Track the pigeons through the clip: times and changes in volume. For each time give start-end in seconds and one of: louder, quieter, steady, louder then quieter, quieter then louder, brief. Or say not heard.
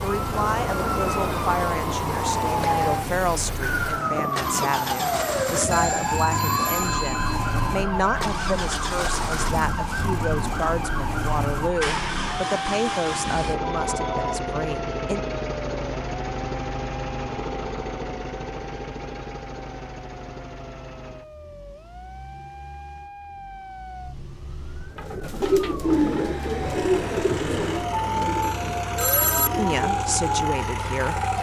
24.9-30.5 quieter.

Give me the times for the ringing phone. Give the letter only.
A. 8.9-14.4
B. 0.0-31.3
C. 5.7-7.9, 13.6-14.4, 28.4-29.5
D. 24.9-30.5
C.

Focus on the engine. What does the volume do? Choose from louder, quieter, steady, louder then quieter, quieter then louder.
quieter then louder.